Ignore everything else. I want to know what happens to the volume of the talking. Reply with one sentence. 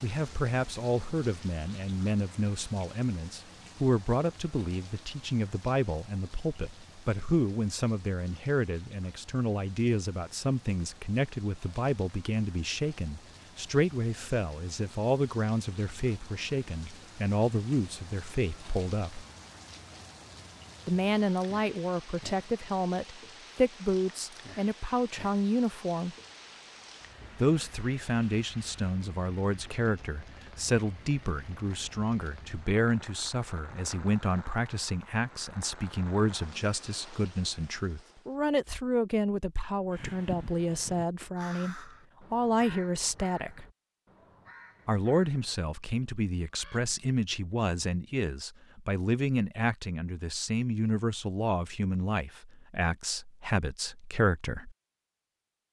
The volume of the talking stays about the same.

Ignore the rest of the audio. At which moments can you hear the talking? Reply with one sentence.
You can hear the talking from 0.0 to 19.2 s, from 20.9 to 26.1 s, from 27.4 to 43.6 s and from 44.9 to 54.8 s.